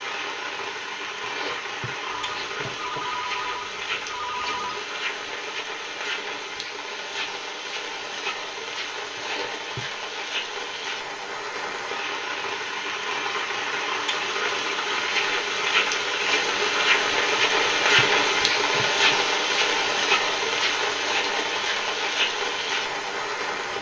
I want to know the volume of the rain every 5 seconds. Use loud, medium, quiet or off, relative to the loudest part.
medium, medium, medium, loud, loud.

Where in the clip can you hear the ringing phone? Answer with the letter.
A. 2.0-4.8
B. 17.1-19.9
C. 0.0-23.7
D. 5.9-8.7
A.